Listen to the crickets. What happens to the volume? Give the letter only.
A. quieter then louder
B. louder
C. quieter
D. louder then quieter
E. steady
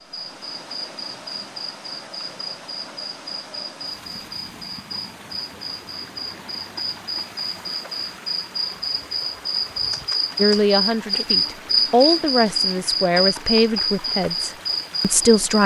B.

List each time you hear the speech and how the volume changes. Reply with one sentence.
The speech can be heard from 10.3 to 15.6 s, getting louder then quieter.